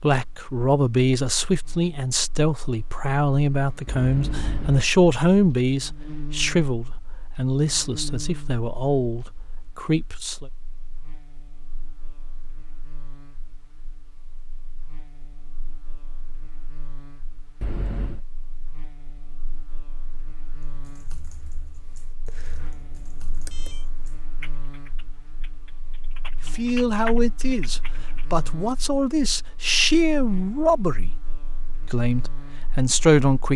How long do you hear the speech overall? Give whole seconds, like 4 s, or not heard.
17 s.